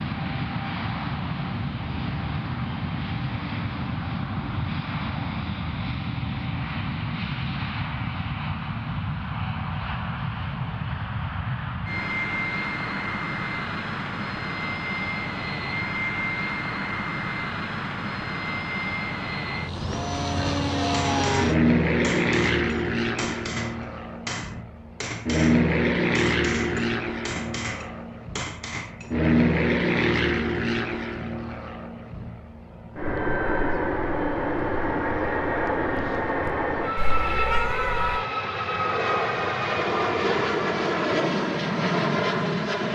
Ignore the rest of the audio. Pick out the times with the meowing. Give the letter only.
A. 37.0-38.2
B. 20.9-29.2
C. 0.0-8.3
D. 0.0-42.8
A.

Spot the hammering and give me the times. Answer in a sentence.
You can hear the hammering from 20.9 to 29.2 s.